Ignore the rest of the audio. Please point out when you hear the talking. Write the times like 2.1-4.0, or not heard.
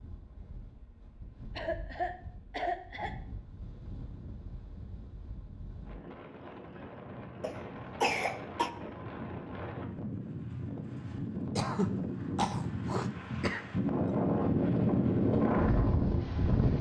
not heard.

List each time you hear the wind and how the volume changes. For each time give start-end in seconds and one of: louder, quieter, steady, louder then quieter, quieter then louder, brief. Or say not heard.
0.0-16.7 louder.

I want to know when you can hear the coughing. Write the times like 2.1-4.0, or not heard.
1.6-3.1, 7.4-8.7, 11.6-14.1.